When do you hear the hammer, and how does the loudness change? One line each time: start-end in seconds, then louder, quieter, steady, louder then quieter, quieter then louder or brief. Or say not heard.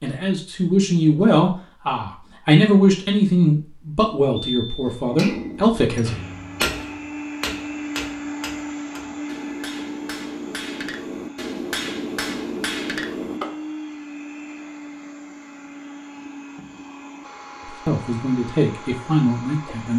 5.0-13.6 quieter then louder.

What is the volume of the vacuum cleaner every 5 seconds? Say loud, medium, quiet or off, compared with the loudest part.
off, loud, loud, medium.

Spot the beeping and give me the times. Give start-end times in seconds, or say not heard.
4.4-5.0.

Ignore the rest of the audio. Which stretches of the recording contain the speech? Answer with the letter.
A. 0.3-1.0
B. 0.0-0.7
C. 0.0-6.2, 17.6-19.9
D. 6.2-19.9
C.